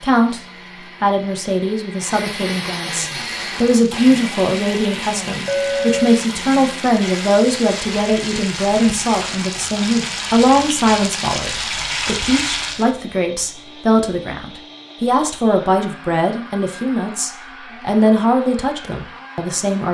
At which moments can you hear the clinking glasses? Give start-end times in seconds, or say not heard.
5.5-6.2.